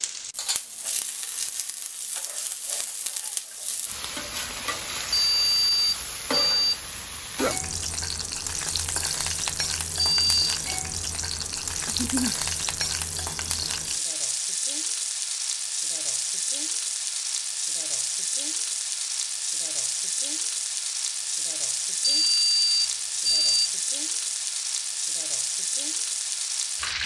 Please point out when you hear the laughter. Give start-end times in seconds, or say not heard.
11.8-12.3.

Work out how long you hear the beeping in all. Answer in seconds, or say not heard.
4 s.